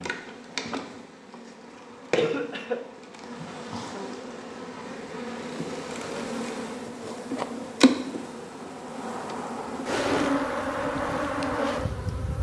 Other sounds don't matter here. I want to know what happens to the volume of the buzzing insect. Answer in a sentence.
The loudness of the buzzing insect goes up.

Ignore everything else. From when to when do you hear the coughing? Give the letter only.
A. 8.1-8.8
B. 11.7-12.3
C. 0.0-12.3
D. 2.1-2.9
D.